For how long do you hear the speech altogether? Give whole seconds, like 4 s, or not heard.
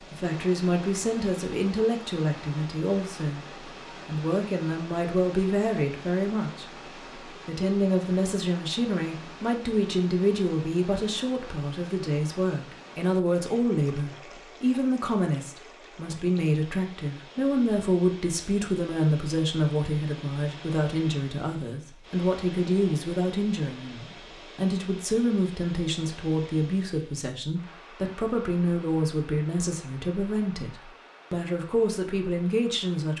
32 s.